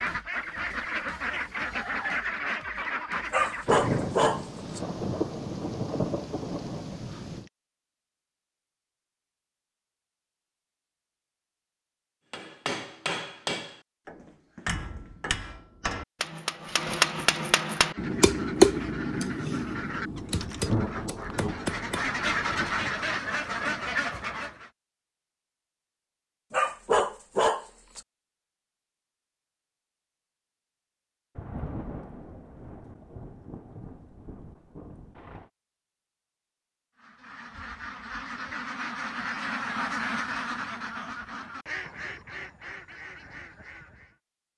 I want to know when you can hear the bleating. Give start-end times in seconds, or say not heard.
not heard.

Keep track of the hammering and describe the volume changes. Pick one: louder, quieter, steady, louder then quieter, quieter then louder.
louder then quieter.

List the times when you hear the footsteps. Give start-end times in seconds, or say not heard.
not heard.